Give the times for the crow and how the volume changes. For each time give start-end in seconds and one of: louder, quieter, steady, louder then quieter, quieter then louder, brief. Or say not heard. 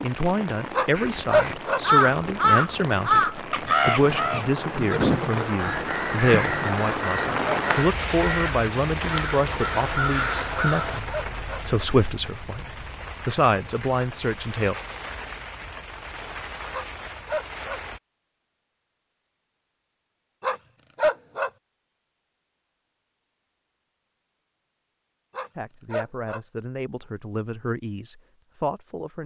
0.9-11.0 quieter.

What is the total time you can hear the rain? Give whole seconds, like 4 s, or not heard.
18 s.